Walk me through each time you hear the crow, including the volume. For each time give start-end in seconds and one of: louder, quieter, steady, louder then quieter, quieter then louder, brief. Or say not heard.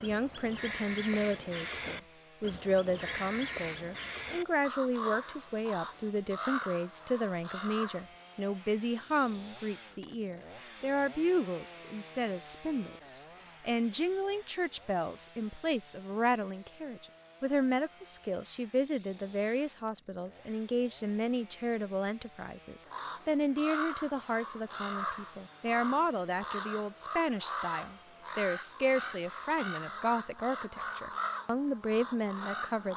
0.0-8.1 steady
22.9-32.9 steady.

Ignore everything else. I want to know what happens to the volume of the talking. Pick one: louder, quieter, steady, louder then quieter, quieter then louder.
steady.